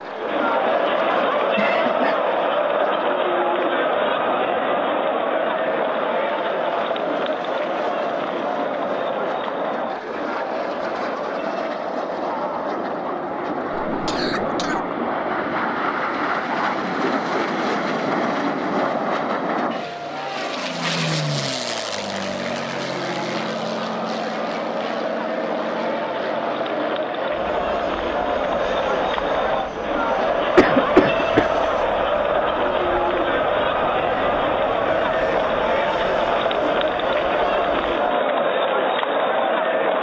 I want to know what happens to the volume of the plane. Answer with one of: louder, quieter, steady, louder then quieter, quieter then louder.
louder then quieter.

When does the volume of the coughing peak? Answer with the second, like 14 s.
31 s.